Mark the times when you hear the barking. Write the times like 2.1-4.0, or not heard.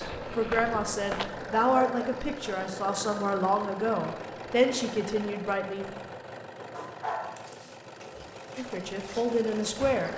1.6-2.0, 6.7-8.2.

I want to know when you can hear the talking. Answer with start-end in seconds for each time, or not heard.
0.0-5.8, 8.6-10.1.